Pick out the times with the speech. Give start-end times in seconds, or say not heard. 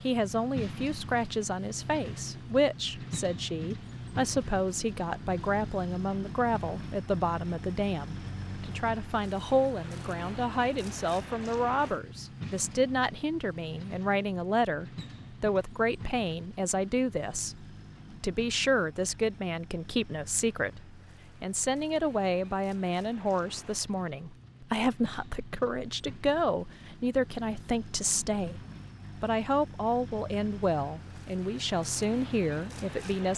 0.0-28.6, 29.2-33.3.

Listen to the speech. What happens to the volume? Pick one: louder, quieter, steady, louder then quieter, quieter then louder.
steady.